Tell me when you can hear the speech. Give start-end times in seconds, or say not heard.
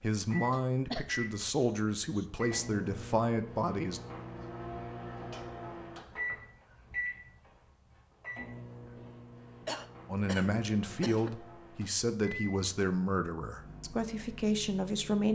0.0-4.0, 10.1-15.3.